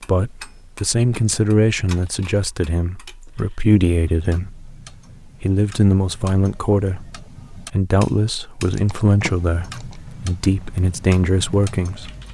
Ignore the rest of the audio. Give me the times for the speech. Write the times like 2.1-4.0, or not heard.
0.0-4.7, 5.4-12.2.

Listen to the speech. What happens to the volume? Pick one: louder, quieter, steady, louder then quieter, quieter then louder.
steady.